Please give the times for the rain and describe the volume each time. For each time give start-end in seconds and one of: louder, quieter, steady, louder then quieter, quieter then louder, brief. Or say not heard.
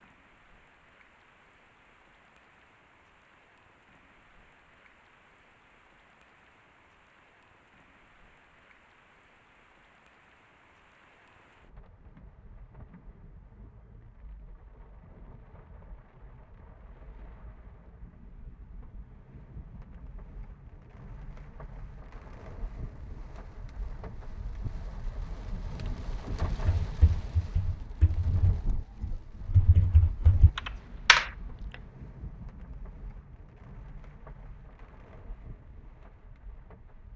0.0-37.1 louder then quieter.